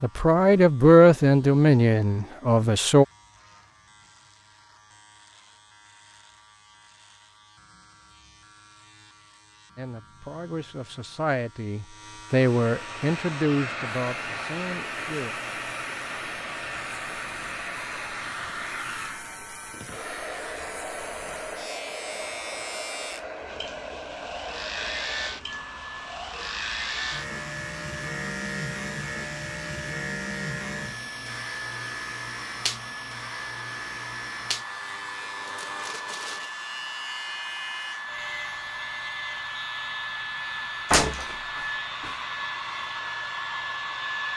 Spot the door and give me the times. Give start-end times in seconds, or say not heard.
40.9-42.1.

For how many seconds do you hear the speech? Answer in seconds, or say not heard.
9 s.